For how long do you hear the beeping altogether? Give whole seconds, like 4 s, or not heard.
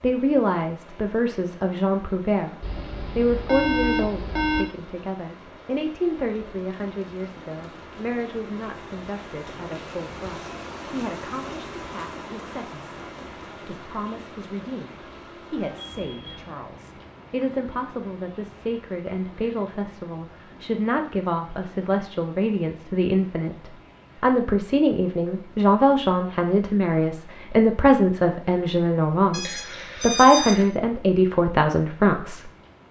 4 s.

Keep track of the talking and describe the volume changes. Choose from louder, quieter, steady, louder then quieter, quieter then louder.
quieter then louder.